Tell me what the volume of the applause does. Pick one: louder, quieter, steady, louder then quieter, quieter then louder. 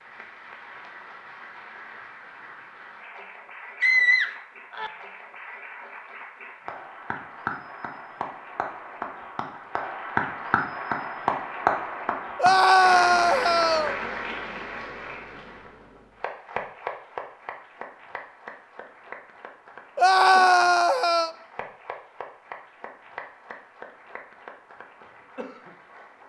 louder then quieter.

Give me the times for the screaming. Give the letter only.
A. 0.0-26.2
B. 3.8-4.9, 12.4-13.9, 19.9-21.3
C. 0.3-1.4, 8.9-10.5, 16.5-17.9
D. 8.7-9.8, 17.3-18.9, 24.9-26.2
B.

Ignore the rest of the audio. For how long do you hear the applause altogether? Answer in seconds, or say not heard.
26 s.